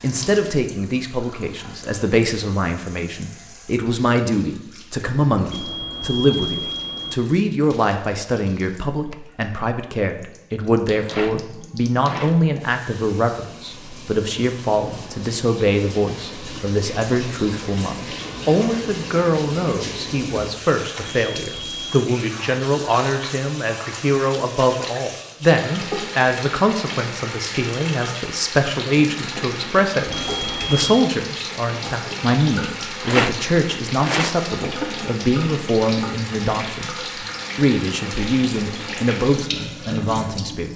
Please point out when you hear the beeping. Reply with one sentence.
The beeping can be heard from 5.5 to 7.2 s, from 20.9 to 22.1 s and from 30.1 to 31.1 s.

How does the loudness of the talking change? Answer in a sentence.
The loudness of the talking stays about the same.